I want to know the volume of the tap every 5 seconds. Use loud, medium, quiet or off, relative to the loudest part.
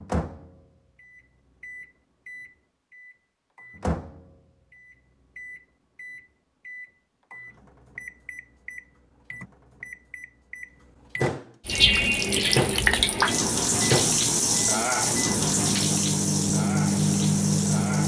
off, off, loud, medium.